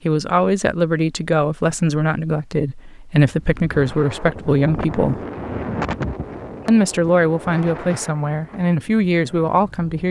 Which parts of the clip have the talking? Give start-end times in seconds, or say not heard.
0.1-5.2, 6.7-10.0.